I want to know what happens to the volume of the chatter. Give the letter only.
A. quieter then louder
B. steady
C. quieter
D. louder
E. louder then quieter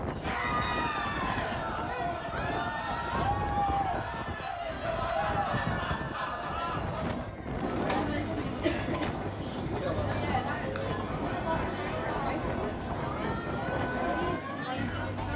B.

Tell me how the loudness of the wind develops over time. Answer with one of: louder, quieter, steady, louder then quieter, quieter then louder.
steady.